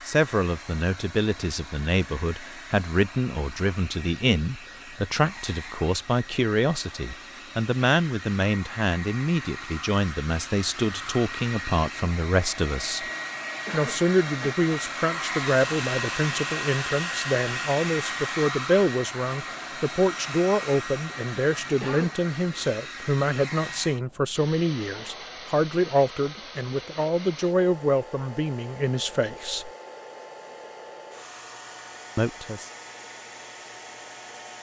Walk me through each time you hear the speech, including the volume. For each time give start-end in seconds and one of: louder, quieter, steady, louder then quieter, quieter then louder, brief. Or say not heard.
0.1-13.1 steady
13.7-29.7 steady
32.1-32.7 brief.